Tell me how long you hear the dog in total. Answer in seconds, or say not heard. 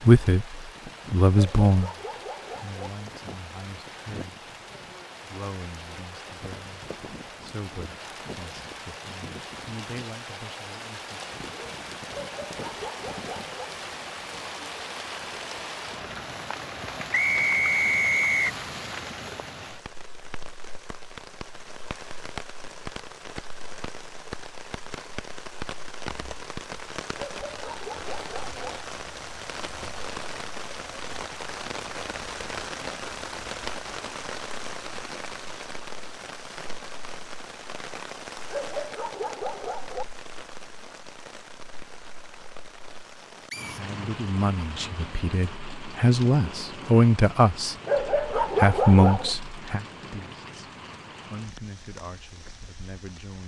8 s.